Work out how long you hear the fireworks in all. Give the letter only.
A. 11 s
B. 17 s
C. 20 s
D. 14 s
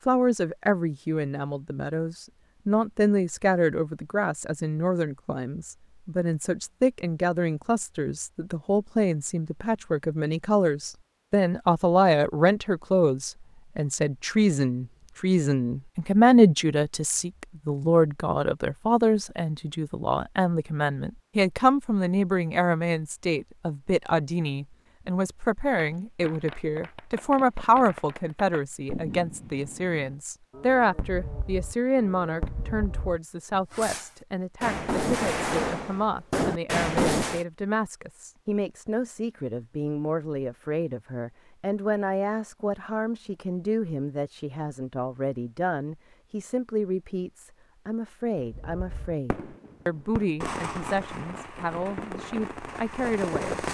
B.